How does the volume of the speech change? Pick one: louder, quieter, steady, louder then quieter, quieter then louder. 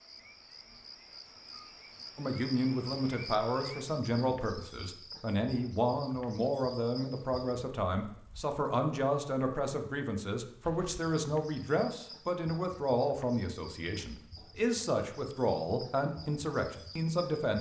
steady.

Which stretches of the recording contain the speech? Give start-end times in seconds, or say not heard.
2.1-17.5.